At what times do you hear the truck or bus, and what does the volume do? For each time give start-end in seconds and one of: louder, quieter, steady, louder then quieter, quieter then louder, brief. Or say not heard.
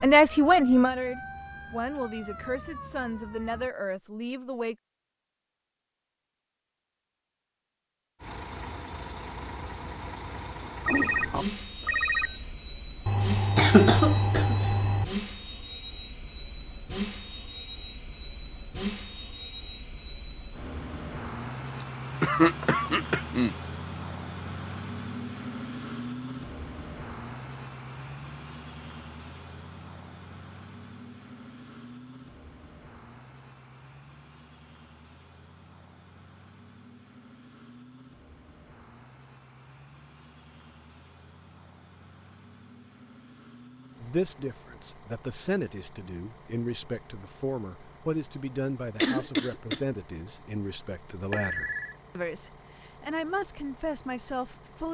8.2-54.8 quieter.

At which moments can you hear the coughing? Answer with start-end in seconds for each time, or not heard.
13.1-15.1, 21.8-23.6, 49.0-49.8.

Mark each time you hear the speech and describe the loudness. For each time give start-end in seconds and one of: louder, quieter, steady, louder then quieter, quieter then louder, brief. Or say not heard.
0.0-4.8 quieter
44.0-54.8 steady.